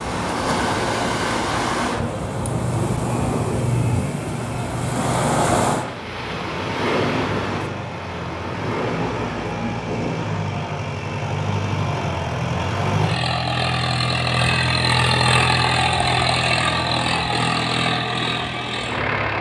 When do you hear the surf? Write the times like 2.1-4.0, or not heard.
0.0-10.4.